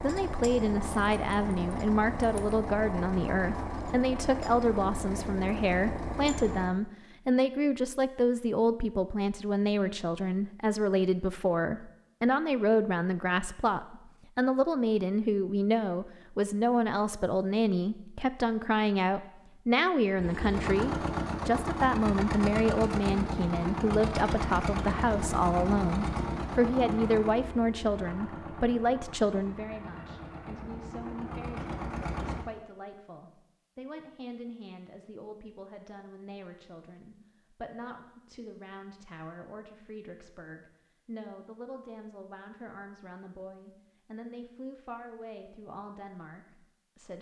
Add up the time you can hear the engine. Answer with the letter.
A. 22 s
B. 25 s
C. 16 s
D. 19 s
D.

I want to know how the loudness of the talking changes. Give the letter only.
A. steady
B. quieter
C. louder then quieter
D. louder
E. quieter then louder
B.